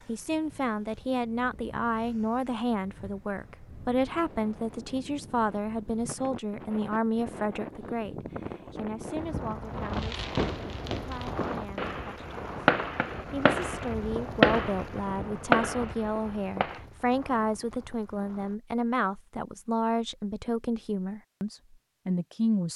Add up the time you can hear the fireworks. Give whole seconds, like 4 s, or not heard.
7 s.